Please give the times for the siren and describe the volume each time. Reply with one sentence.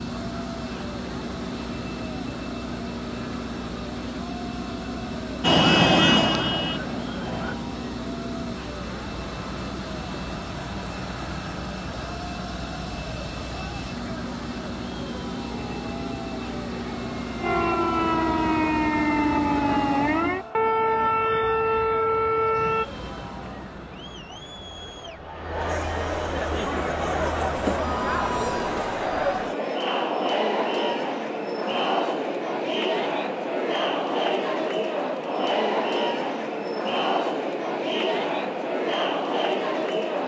You can hear the siren briefly from 5.4 to 7.5 s; and from 15.4 to 22.9 s, getting louder.